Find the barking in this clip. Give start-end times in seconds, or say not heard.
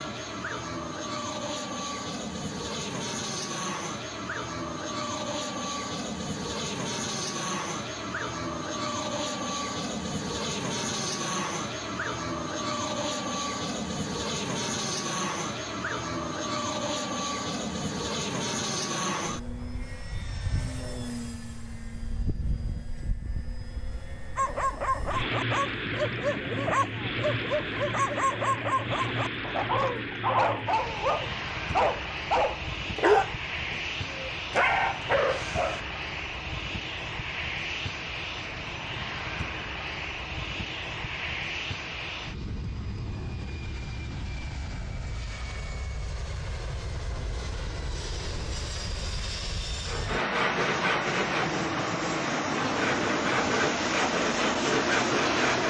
24.4-35.8.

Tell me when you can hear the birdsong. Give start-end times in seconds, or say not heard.
not heard.